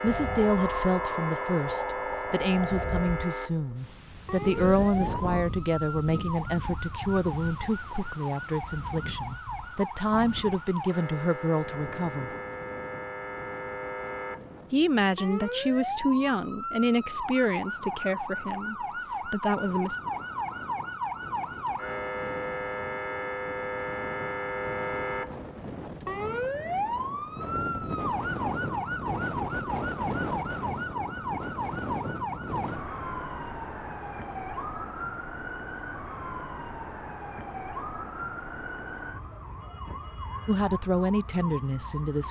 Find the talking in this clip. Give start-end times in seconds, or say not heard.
0.0-12.3, 14.7-20.0, 40.5-42.2.